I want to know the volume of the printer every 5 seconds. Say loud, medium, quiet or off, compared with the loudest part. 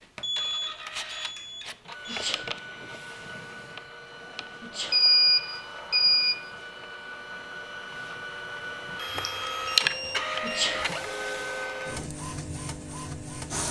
medium, loud, loud.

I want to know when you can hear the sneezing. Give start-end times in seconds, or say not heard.
2.0-2.5, 4.6-5.0, 10.4-10.8.